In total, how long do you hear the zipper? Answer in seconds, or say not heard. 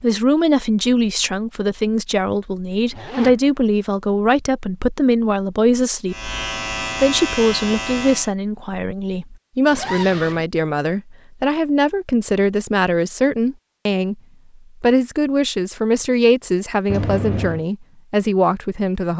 2 s.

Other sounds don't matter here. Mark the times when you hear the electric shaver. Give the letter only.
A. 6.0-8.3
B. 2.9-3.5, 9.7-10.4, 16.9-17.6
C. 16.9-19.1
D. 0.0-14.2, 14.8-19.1
A.